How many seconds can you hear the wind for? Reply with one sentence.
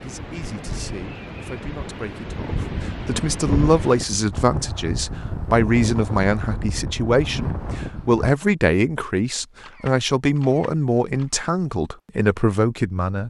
You can hear the wind for 8 seconds altogether.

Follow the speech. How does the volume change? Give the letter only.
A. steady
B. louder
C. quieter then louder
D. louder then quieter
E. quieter
B.